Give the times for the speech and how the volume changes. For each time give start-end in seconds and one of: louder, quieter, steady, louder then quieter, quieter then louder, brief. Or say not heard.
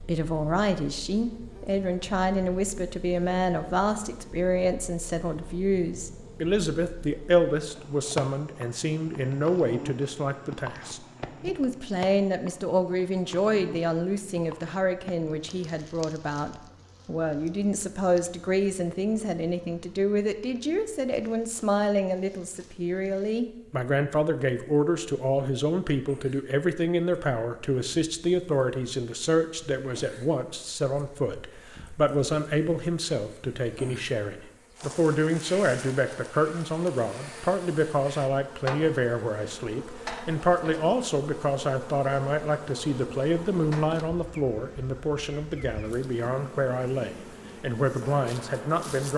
0.1-49.1 steady.